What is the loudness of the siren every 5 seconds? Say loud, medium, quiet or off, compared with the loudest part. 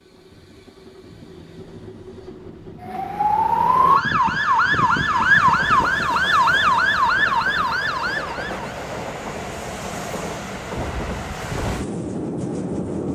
loud, loud, off.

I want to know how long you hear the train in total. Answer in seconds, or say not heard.
13 s.